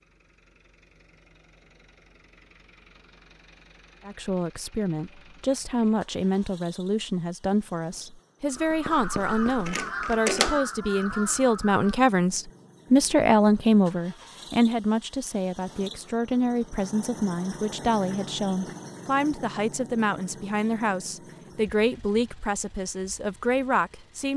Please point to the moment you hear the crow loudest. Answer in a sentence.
The loudest moment of the crow is at 10 seconds.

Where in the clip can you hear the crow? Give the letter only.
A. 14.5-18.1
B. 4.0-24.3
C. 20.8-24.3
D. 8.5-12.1
D.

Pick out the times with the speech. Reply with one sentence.
The speech can be heard from 4.0 to 24.3 s.